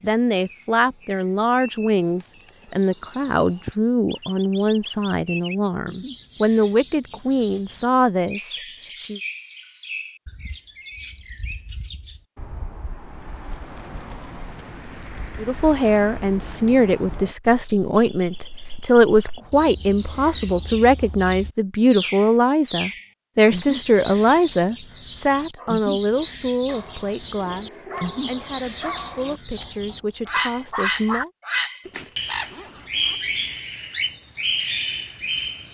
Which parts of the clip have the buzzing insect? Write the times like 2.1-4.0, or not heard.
not heard.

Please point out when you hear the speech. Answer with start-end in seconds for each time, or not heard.
0.0-9.2, 15.3-31.3.